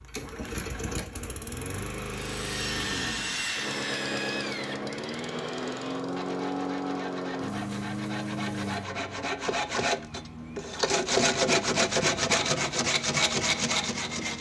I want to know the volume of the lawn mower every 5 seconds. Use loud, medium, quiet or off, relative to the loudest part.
loud, loud, medium.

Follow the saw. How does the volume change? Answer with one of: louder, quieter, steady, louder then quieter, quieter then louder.
quieter then louder.